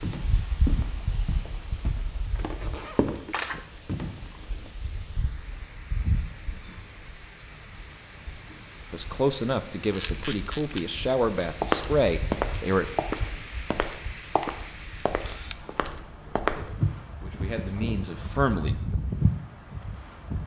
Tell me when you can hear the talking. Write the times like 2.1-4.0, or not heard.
8.9-13.0, 16.2-18.8.